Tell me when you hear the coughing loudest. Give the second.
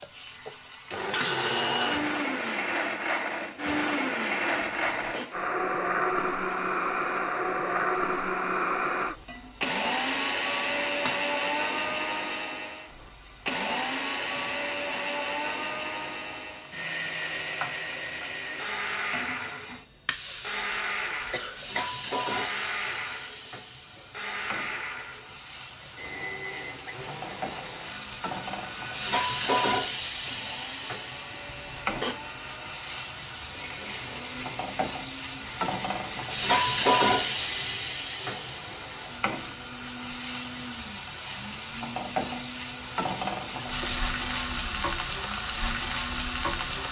32 s.